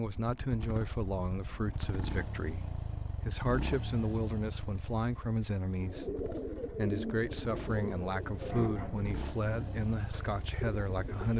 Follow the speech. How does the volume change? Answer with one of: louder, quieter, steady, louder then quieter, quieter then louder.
steady.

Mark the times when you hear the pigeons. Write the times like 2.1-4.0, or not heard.
5.8-11.3.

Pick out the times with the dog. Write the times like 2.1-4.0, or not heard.
not heard.